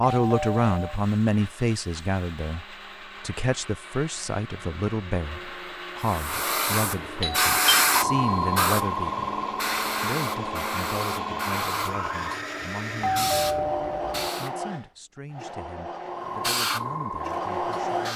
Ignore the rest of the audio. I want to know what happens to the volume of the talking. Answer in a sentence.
The loudness of the talking goes down.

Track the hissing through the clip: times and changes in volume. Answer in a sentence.
You can hear the hissing from 6.0 to 14.6 s, getting quieter; and briefly from 16.1 to 18.1 s.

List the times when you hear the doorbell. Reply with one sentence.
The doorbell can be heard from 0.1 to 0.9 s, from 7.2 to 8.5 s and from 13.0 to 14.3 s.